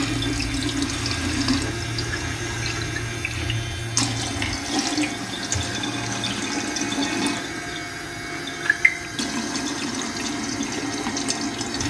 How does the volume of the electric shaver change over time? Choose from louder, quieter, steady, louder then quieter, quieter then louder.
quieter.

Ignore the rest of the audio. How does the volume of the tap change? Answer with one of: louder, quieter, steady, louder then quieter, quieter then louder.
steady.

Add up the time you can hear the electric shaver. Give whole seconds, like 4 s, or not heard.
12 s.